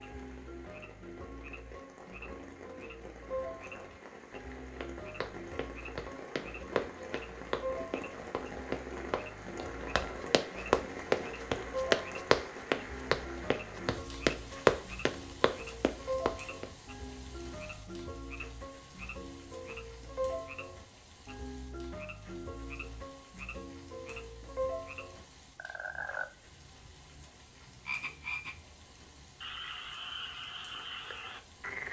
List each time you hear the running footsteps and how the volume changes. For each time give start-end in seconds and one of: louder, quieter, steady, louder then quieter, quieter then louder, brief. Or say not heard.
4.8-16.6 louder.